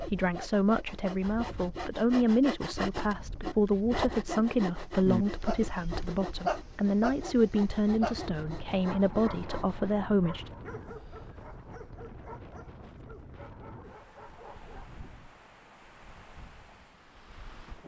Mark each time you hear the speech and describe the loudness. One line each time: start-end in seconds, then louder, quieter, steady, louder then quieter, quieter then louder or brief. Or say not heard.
0.0-10.5 steady.